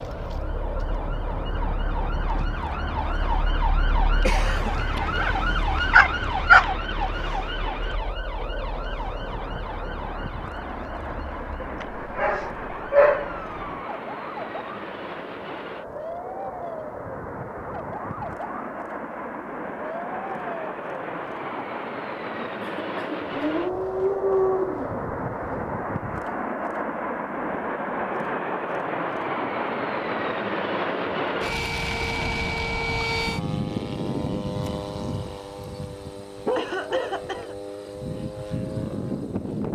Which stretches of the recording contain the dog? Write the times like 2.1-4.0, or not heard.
5.0-6.7, 11.6-13.3, 23.3-25.8, 36.4-37.2.